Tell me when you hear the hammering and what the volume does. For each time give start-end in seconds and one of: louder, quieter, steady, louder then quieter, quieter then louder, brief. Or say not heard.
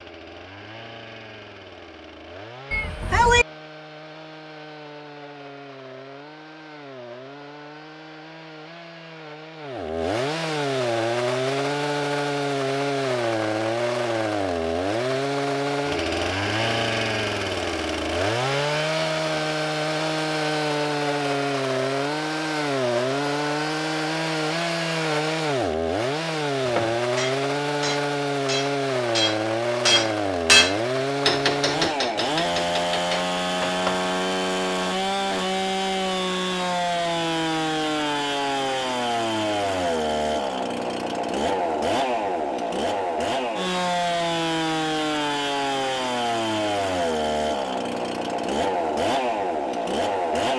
26.6-34.1 louder then quieter.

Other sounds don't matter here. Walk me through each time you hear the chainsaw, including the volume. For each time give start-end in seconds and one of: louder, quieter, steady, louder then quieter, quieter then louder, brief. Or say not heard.
0.0-50.5 louder.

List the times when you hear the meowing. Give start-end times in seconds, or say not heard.
2.7-3.5.